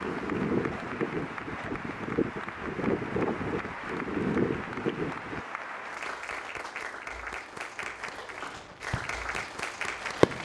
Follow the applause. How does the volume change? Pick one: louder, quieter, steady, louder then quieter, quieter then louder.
steady.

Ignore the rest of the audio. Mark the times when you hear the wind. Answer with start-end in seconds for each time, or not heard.
0.0-5.5.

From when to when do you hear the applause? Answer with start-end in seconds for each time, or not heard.
0.0-10.4.